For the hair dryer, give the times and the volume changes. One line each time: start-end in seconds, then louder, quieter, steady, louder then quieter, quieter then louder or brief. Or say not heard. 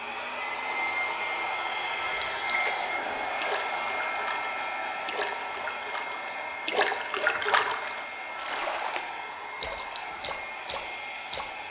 0.0-11.6 quieter.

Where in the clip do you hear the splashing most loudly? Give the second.
7 s.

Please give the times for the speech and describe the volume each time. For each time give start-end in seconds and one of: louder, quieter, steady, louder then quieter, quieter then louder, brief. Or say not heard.
not heard.